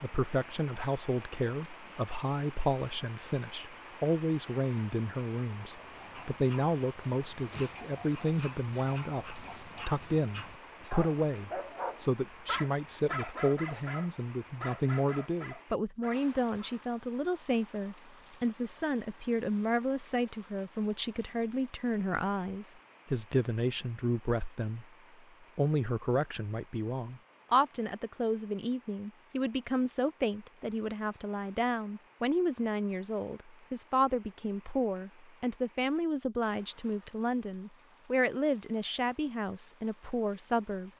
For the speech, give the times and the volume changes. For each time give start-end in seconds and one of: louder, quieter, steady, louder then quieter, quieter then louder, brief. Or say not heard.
0.0-24.9 steady
25.6-40.9 steady.